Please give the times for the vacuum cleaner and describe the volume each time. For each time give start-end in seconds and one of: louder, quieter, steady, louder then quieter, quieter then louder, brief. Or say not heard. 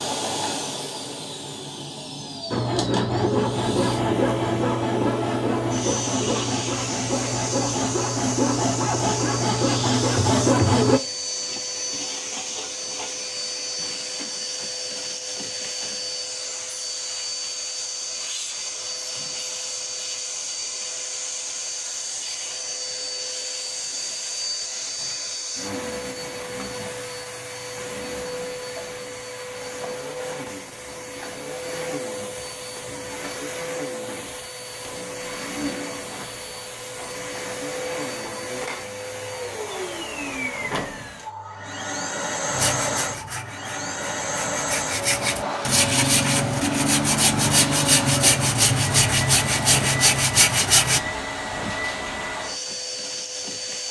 0.0-53.8 steady.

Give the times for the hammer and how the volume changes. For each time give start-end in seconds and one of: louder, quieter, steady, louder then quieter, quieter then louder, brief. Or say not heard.
not heard.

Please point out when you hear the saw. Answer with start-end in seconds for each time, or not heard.
2.5-11.0, 42.5-51.0.